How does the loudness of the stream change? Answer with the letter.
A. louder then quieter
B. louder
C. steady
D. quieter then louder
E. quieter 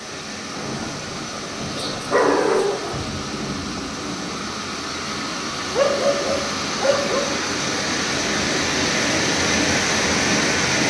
B.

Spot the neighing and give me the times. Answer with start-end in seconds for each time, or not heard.
not heard.